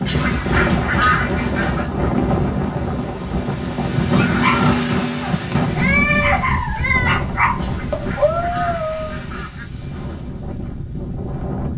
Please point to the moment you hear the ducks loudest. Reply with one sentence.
The loudest moment of the ducks is at 1 second.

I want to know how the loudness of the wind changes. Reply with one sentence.
The loudness of the wind goes down.